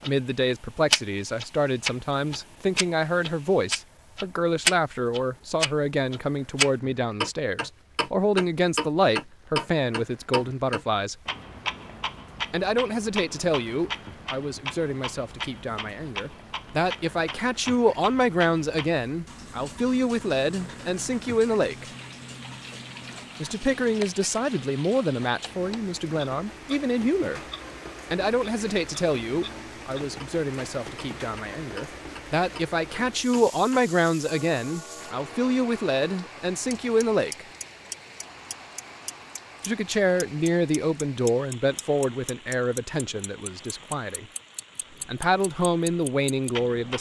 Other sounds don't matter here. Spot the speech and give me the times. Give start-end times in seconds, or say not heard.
0.0-11.2, 12.5-21.9, 23.4-27.4, 28.1-37.5, 39.6-44.2, 45.0-46.9.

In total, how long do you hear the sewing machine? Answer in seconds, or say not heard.
not heard.